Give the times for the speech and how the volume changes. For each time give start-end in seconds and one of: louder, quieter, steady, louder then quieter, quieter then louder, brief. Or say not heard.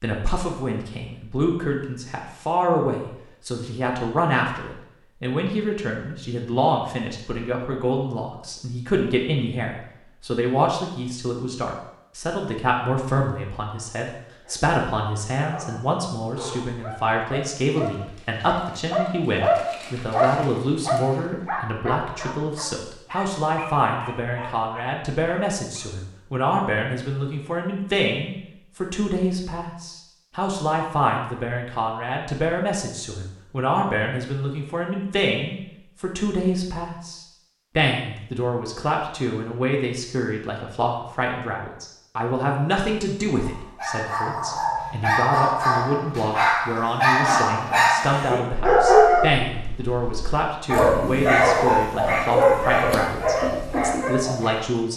0.0-54.9 steady.